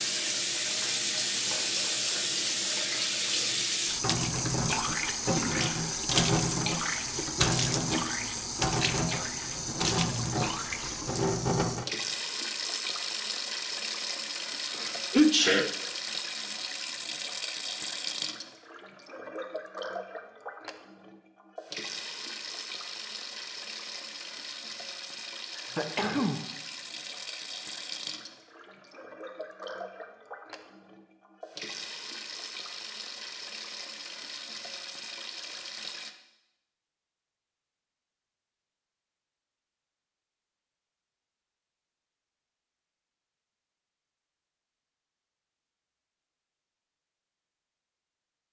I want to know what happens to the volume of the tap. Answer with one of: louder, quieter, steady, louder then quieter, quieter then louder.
quieter.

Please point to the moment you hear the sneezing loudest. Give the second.
15 s.